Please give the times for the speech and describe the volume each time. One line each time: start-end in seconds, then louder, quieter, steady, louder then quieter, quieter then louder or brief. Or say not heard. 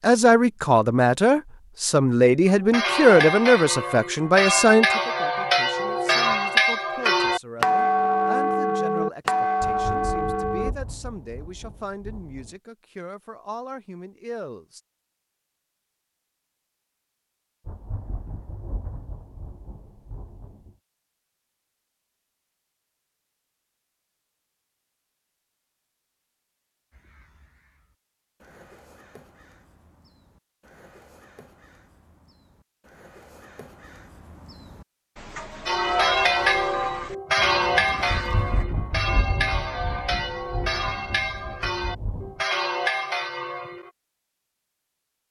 0.0-14.8 quieter.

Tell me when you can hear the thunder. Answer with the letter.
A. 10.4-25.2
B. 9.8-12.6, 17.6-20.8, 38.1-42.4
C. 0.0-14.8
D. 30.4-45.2
B.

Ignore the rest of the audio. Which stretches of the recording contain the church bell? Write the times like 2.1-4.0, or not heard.
2.5-10.8, 35.6-43.9.